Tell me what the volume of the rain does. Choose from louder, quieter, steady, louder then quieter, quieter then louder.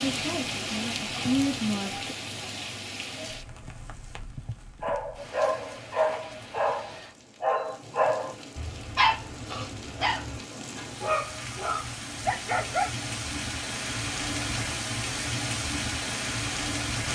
quieter then louder.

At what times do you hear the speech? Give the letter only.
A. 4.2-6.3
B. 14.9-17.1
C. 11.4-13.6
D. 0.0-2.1
D.